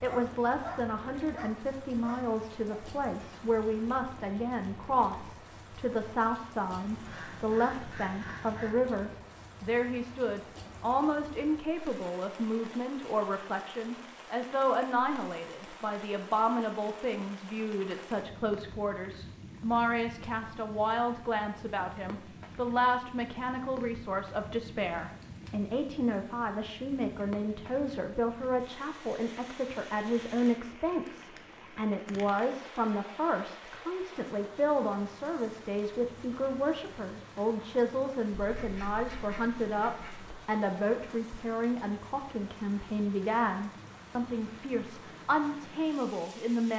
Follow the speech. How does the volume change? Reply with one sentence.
The loudness of the speech stays about the same.